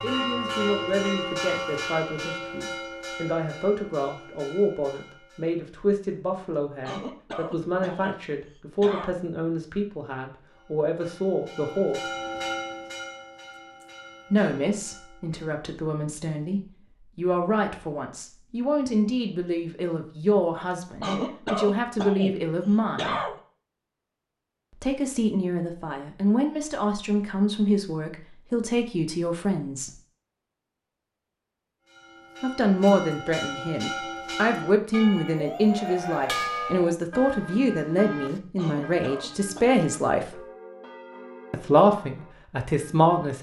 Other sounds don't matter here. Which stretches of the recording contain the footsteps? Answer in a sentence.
The footsteps can't be heard in this clip.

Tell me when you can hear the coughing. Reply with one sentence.
You can hear the coughing from 6.8 to 9.2 s, from 21.0 to 23.4 s and from 38.5 to 39.8 s.